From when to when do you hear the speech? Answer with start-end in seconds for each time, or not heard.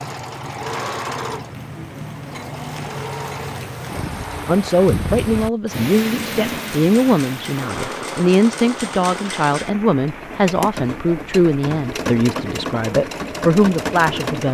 4.5-14.5.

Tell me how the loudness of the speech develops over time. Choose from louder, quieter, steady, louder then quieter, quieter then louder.
steady.